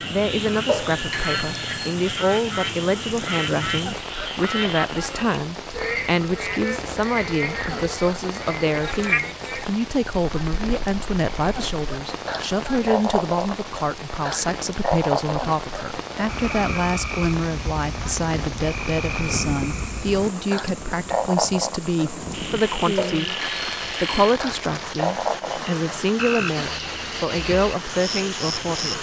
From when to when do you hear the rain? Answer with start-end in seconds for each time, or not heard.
0.0-28.9.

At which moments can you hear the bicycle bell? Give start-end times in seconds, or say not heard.
0.7-1.9, 22.9-24.4.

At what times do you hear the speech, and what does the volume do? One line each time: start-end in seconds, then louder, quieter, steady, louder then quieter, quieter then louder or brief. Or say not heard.
0.1-28.9 steady.